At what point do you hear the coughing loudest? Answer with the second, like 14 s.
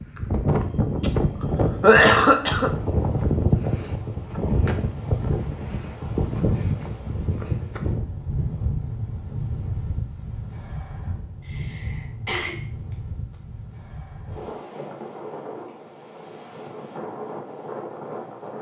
2 s.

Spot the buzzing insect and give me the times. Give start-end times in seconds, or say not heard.
not heard.